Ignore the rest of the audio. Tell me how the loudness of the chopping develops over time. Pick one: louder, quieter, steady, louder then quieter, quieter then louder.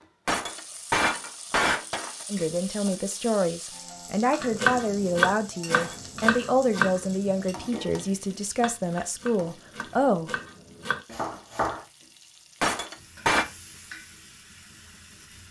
quieter then louder.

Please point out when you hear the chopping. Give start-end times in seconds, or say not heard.
4.4-11.8.